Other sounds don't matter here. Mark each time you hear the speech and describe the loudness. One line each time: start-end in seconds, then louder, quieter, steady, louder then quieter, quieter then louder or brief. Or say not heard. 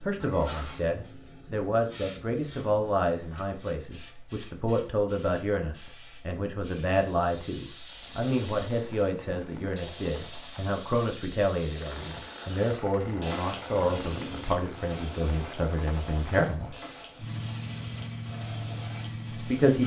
0.0-16.8 steady
19.3-19.8 brief.